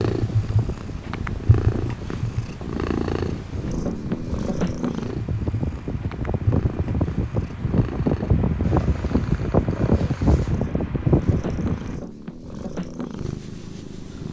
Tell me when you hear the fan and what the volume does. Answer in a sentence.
You can hear the fan from 0.1 to 12.0 s, getting louder.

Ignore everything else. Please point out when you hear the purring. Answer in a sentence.
You can hear the purring from 0.0 to 14.2 s.